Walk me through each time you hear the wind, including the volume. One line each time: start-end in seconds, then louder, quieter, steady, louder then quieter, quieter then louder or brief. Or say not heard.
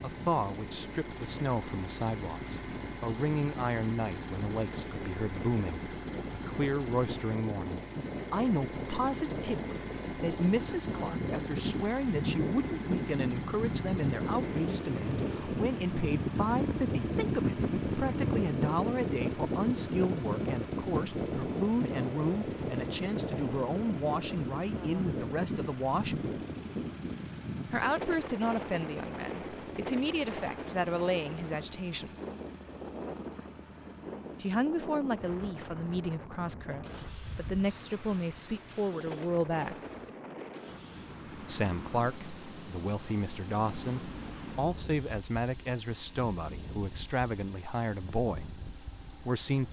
0.0-49.6 louder then quieter.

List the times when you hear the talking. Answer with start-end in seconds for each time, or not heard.
0.0-26.2, 27.7-32.1, 34.4-39.8, 41.4-49.6.